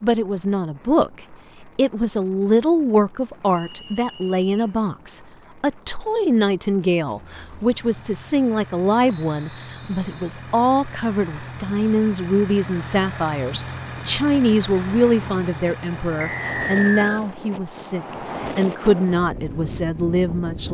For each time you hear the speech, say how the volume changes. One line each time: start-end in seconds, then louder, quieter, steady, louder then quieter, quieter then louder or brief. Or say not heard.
0.0-20.6 steady.